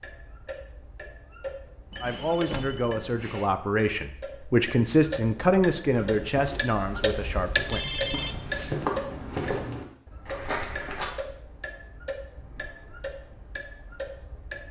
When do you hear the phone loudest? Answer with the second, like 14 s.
8 s.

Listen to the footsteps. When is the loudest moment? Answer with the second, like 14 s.
9 s.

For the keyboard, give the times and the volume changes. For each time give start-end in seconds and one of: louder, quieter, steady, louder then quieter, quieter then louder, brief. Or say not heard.
not heard.